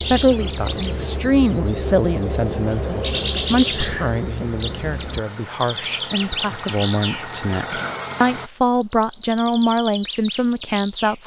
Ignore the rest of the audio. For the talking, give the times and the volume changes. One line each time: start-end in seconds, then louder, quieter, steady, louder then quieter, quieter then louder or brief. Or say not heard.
0.1-11.2 quieter then louder.